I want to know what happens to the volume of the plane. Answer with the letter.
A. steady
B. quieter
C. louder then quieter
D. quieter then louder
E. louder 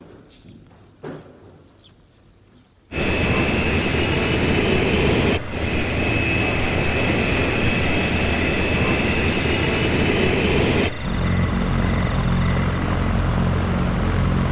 A.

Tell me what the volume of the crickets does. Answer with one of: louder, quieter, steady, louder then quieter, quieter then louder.
steady.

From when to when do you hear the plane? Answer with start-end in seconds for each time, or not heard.
2.9-14.4.